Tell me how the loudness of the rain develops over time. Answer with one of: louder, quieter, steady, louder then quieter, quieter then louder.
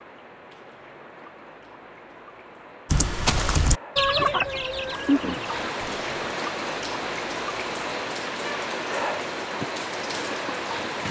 louder.